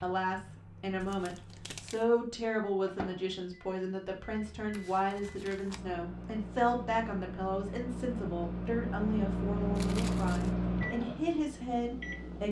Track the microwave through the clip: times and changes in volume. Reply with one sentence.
The microwave can be heard from 0.0 to 12.4 s, getting louder.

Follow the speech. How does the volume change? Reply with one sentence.
The loudness of the speech stays about the same.